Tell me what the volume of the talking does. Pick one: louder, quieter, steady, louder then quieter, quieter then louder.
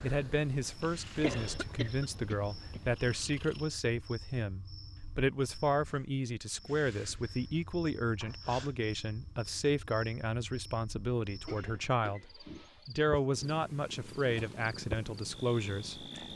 steady.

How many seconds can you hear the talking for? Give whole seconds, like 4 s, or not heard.
16 s.